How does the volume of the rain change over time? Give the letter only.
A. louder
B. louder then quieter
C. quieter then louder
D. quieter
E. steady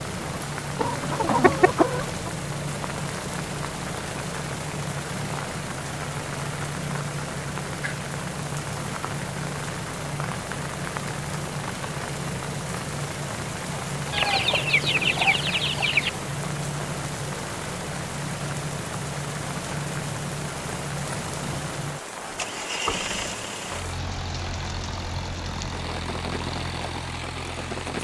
E.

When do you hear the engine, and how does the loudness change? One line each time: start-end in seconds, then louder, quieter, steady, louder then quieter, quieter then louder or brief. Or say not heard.
0.0-27.9 steady.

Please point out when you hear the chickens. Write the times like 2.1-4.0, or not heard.
0.8-2.4, 14.1-16.1.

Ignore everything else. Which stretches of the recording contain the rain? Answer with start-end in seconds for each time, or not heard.
0.0-27.9.